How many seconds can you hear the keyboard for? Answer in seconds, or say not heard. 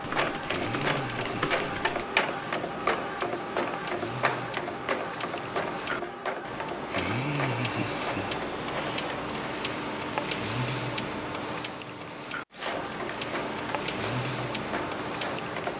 2 s.